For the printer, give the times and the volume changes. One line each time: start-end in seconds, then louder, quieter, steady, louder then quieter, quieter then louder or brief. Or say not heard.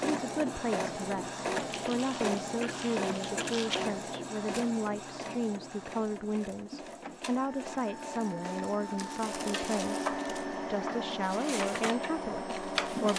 0.0-13.1 quieter then louder.